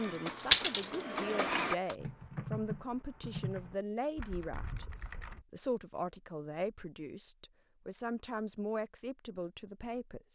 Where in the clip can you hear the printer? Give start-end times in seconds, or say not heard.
0.0-1.8.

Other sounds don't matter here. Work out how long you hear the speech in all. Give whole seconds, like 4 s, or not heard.
10 s.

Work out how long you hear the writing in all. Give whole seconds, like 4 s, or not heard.
not heard.